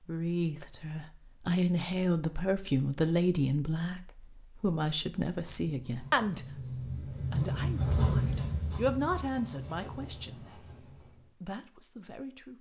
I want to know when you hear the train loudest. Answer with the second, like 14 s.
8 s.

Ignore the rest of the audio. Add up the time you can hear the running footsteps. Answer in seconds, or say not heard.
not heard.